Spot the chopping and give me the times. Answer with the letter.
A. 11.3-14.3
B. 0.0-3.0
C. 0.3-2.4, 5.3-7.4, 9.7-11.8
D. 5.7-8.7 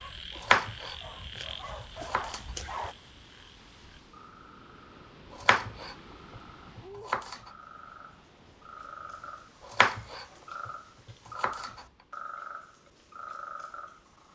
C.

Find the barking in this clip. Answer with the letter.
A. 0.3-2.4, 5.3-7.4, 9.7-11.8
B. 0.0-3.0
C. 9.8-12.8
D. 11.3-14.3
B.